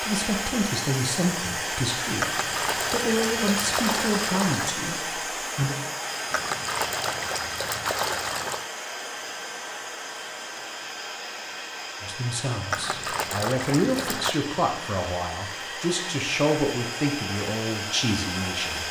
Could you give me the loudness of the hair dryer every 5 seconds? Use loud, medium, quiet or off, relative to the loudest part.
loud, loud, medium, loud.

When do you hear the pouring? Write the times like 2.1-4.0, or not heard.
2.1-4.8, 6.3-8.7, 12.7-14.4.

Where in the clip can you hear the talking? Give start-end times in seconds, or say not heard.
0.0-5.8, 12.0-18.8.